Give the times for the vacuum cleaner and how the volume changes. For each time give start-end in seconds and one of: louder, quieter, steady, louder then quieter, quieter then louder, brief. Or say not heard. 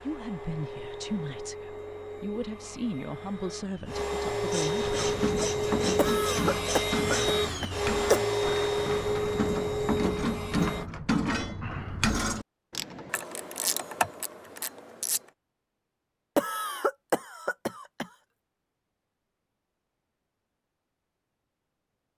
0.0-10.9 louder.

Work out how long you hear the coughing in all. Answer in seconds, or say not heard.
4 s.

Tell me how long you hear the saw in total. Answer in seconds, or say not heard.
3 s.